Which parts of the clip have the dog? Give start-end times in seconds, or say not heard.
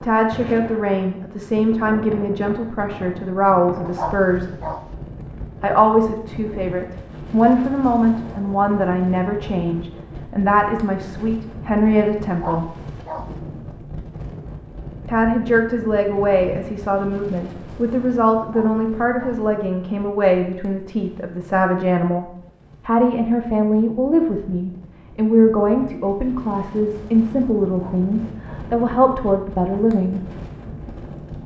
3.9-4.8, 12.3-13.3, 18.4-19.4, 27.6-28.7.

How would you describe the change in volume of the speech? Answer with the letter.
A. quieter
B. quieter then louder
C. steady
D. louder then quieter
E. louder
C.